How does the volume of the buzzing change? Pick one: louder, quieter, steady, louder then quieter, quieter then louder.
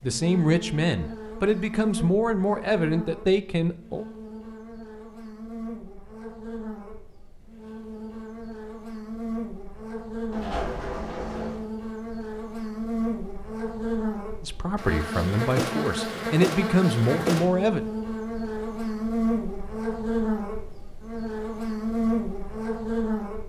louder.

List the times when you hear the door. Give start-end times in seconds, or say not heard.
10.3-11.7.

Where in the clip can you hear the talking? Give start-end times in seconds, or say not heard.
0.0-4.0, 14.4-17.8.